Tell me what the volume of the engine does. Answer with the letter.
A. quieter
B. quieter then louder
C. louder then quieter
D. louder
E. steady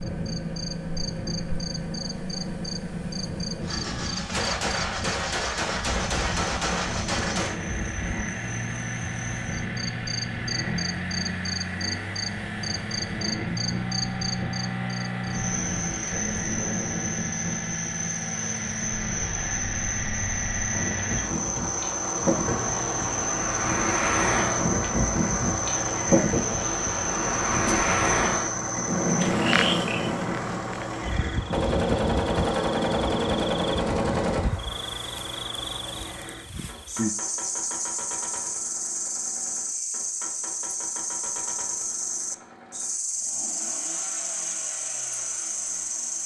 A.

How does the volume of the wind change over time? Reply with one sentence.
The loudness of the wind goes up.